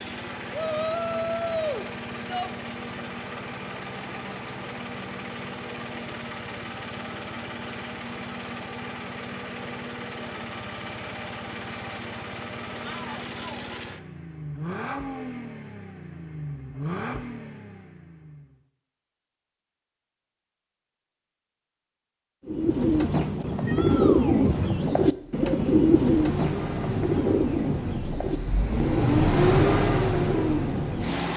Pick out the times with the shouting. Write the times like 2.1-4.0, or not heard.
0.5-2.5, 12.8-13.8, 23.6-24.4.